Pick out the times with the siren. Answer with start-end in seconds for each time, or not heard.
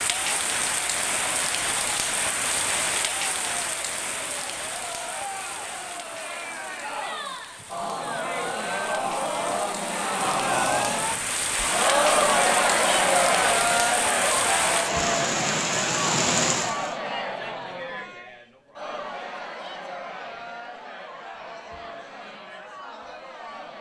not heard.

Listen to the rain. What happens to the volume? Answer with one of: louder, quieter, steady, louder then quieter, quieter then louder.
quieter then louder.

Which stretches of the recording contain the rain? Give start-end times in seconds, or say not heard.
0.0-16.9.